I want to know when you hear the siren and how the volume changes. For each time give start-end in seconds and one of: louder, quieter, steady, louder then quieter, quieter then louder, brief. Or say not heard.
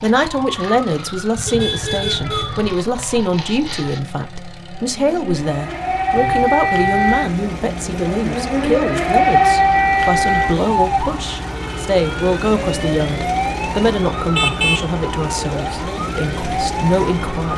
0.0-17.4 louder then quieter.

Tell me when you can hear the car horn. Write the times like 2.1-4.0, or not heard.
1.4-2.8, 6.2-7.2, 14.2-14.8.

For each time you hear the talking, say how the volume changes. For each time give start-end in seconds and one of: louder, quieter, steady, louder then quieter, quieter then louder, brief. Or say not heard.
0.0-17.5 steady.